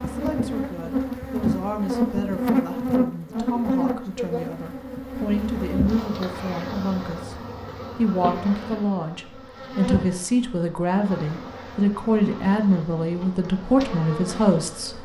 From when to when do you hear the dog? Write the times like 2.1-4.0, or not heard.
not heard.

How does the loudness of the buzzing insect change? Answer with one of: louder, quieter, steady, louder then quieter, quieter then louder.
quieter.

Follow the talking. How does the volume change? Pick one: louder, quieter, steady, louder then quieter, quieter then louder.
louder.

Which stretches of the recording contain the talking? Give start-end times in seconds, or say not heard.
0.0-7.3, 8.0-14.9.